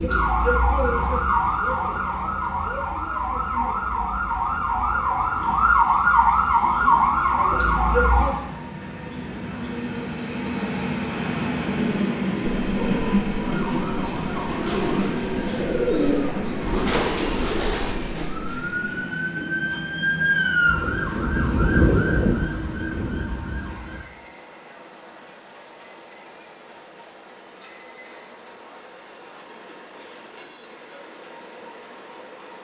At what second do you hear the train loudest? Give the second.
13 s.